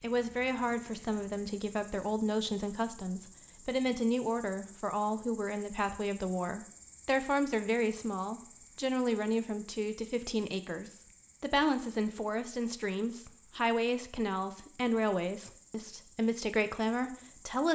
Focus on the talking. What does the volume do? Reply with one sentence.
The loudness of the talking stays about the same.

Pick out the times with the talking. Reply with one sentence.
You can hear the talking from 0.0 to 17.6 s.